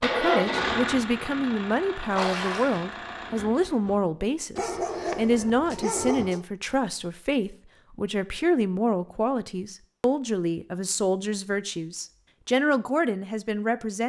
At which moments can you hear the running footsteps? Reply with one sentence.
You can't hear the running footsteps here.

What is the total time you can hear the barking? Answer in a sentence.
You can hear the barking for 2 seconds altogether.